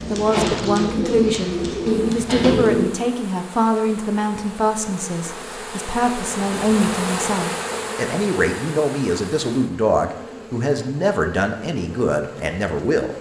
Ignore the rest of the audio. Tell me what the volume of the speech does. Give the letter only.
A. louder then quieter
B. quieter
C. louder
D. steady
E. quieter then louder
D.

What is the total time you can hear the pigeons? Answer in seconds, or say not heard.
3 s.